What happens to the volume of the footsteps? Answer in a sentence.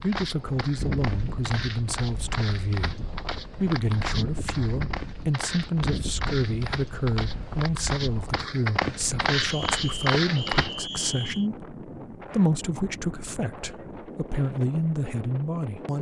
The loudness of the footsteps goes up.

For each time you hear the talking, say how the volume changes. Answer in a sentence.
The talking can be heard from 0.0 to 15.9 s, at a steady volume.